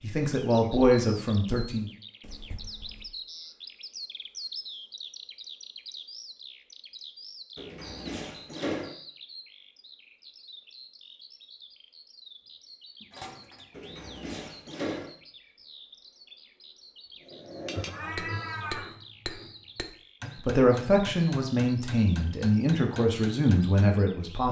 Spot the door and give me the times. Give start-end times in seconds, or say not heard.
7.5-8.9, 13.7-15.2.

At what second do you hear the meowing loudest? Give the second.
18 s.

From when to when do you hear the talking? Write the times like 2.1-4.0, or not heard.
0.0-1.9, 20.4-24.4.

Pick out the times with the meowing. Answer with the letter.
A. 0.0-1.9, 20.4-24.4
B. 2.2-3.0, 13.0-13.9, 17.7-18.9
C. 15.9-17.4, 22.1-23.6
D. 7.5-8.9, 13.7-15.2
B.